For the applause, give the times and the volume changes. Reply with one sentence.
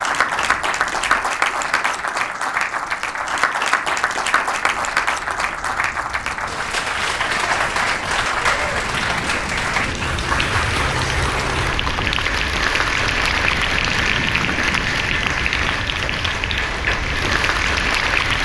You can hear the applause from 0.0 to 18.4 s, at a steady volume.